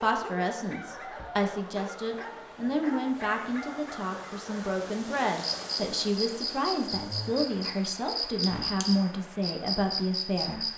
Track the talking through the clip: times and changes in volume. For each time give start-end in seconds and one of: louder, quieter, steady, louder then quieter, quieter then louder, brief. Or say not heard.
0.0-10.7 steady.